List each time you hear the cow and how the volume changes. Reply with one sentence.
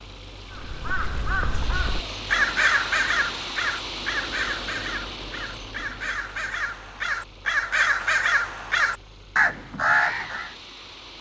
You can't hear the cow here.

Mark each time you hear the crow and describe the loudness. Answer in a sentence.
The crow can be heard from 0.5 to 10.6 s, getting quieter then louder.